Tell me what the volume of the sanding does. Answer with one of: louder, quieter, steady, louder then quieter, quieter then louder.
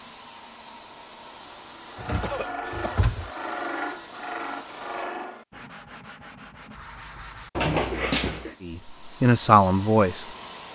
quieter.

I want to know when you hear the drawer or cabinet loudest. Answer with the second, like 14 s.
8 s.